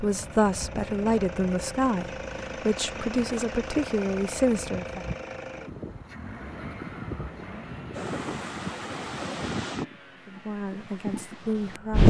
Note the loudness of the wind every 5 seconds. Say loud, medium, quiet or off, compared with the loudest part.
quiet, medium, loud.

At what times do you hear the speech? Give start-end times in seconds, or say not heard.
0.0-5.0, 10.2-12.0.